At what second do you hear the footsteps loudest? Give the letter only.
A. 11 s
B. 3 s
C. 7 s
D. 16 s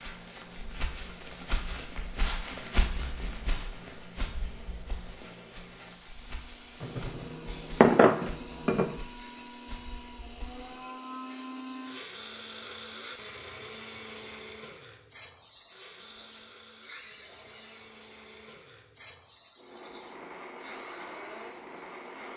B.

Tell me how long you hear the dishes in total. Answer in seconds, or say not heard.
2 s.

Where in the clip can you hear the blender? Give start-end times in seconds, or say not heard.
6.1-22.3.